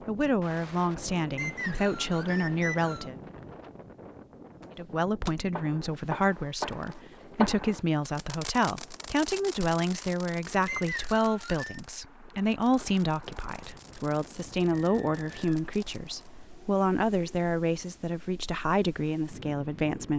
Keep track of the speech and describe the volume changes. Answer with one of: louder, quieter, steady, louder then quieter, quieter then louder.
steady.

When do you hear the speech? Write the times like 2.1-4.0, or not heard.
0.1-3.1, 4.8-20.1.